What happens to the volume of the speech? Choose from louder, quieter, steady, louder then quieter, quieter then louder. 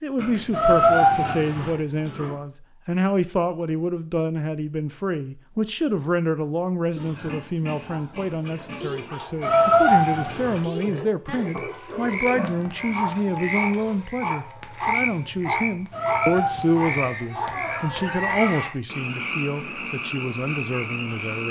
steady.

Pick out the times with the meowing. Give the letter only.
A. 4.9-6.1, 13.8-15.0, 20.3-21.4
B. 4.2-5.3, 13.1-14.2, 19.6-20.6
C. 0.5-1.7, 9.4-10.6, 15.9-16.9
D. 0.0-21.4
C.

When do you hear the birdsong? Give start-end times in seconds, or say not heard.
not heard.